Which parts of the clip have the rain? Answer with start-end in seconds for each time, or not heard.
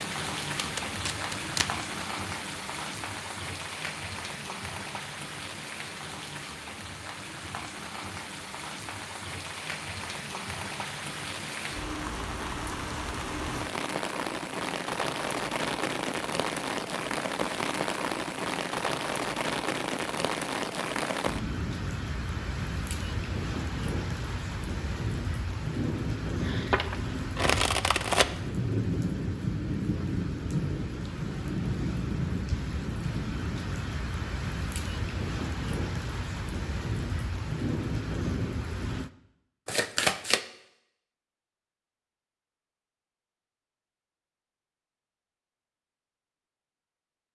0.0-39.1.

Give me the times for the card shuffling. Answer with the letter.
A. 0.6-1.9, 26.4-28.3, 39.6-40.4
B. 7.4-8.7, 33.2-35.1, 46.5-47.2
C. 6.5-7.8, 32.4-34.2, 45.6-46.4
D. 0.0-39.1
A.